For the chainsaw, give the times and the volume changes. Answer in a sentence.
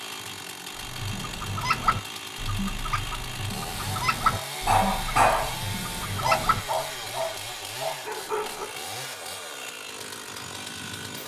You can hear the chainsaw from 0.0 to 11.2 s, at a steady volume.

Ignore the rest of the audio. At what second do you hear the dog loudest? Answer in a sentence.
The loudest moment of the dog is at 5 seconds.